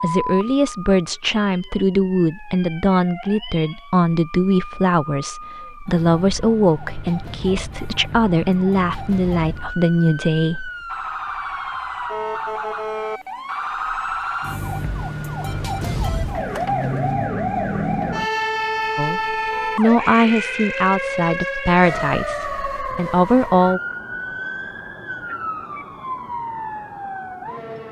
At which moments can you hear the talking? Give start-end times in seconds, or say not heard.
0.0-10.7, 18.9-23.8.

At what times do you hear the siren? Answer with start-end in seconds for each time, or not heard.
0.2-27.8.